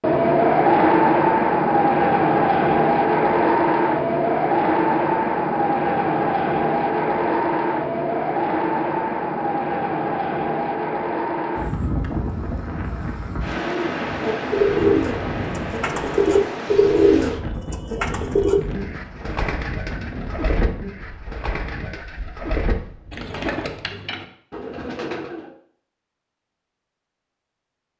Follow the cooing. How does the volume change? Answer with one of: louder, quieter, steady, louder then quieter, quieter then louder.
quieter.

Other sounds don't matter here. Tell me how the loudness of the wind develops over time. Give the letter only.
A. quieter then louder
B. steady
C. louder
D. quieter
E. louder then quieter
D.